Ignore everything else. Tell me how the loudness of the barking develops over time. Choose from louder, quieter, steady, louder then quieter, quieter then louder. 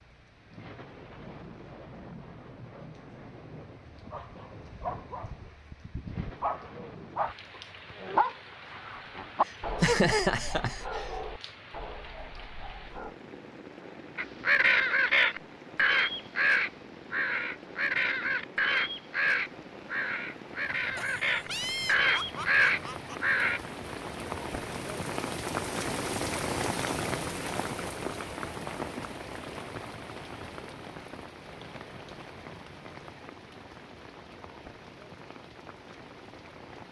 louder then quieter.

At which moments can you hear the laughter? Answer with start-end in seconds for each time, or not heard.
9.8-11.0, 20.9-23.2.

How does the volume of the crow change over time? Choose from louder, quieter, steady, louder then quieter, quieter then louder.
quieter then louder.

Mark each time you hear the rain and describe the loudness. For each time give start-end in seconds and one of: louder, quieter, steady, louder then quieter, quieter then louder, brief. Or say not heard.
0.0-36.8 louder then quieter.